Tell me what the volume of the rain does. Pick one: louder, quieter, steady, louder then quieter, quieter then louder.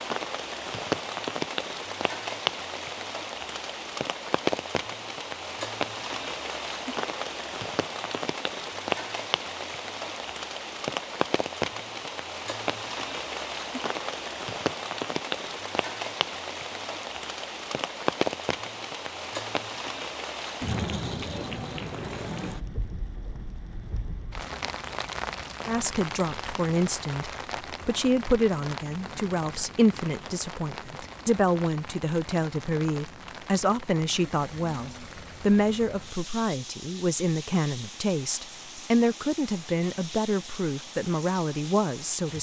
quieter.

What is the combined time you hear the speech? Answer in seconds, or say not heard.
17 s.